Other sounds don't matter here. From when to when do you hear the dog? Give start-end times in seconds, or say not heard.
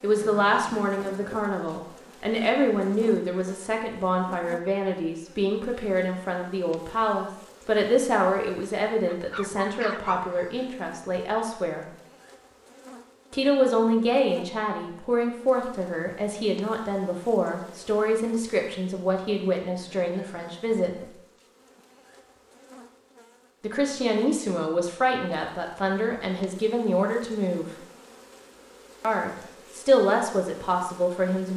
9.1-10.3.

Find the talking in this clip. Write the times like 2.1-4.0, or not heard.
0.0-11.8, 13.3-21.0, 23.6-27.6, 29.0-31.5.